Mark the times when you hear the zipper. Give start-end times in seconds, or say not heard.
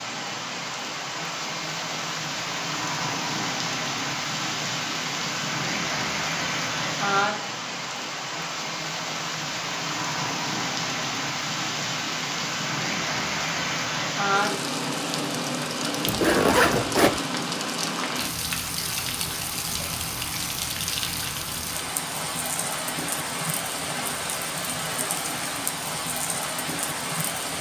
16.1-17.2.